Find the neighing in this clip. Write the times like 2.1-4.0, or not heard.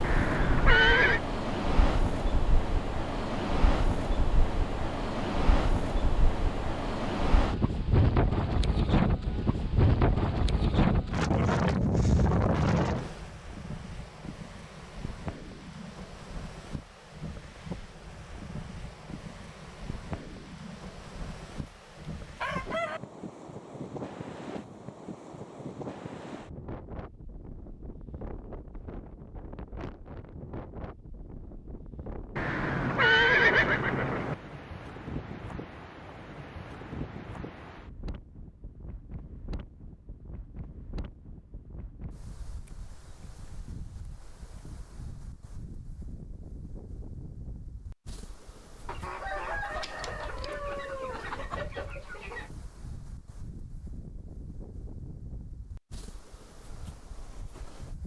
0.0-1.2, 32.4-34.4.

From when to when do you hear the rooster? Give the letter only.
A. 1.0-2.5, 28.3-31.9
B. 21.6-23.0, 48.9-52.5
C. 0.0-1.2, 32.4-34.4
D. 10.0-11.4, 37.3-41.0
B.